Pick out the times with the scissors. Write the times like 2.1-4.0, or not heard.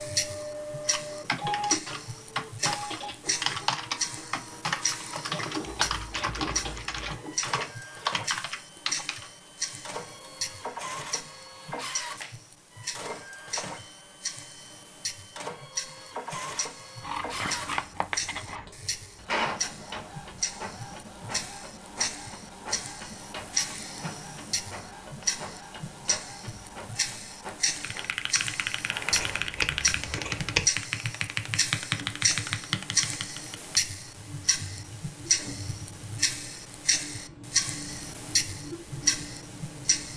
5.8-7.2, 17.0-18.7, 29.1-30.7.